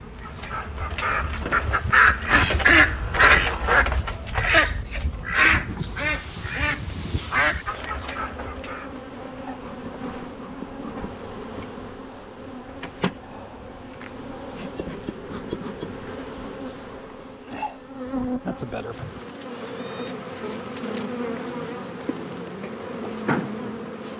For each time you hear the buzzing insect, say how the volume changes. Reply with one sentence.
The buzzing insect can be heard from 0.0 to 24.1 s, getting louder.